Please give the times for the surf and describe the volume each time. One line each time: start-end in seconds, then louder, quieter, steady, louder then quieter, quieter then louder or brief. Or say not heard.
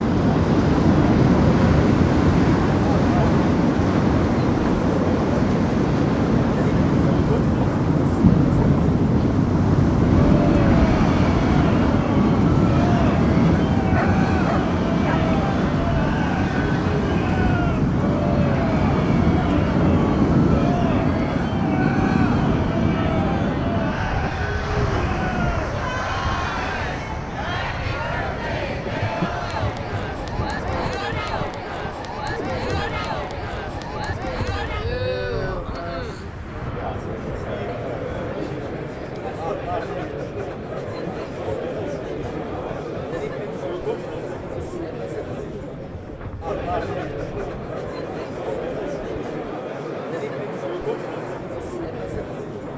0.0-52.7 quieter.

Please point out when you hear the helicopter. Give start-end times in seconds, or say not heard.
not heard.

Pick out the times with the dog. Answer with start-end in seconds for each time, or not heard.
13.9-15.2.